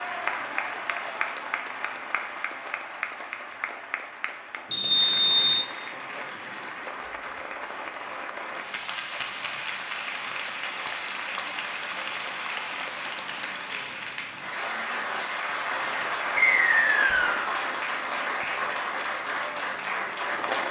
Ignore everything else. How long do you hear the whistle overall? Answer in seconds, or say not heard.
2 s.